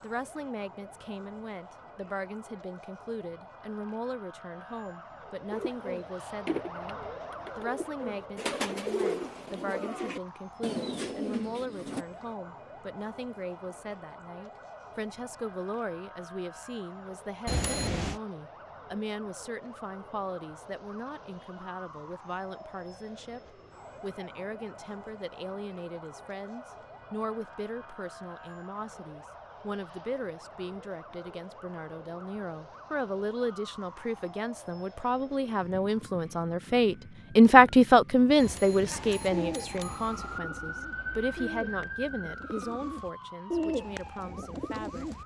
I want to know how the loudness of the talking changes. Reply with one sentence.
The loudness of the talking goes up.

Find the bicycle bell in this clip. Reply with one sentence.
You can hear the bicycle bell from 17.4 to 18.2 s and from 38.4 to 40.4 s.